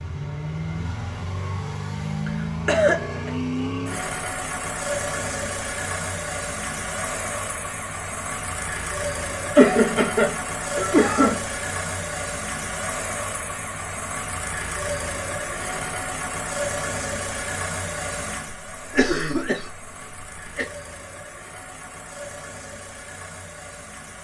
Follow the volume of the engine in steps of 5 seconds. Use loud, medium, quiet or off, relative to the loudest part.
loud, loud, loud, loud, medium.